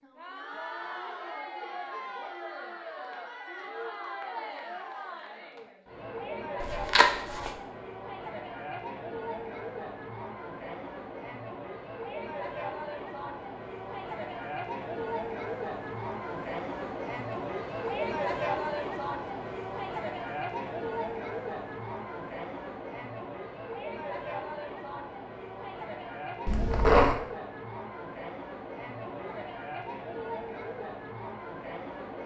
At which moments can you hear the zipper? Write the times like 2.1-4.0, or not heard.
6.6-7.5, 26.4-27.1.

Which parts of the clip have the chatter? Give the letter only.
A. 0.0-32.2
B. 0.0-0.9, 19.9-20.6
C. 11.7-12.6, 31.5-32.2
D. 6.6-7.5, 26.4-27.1
A.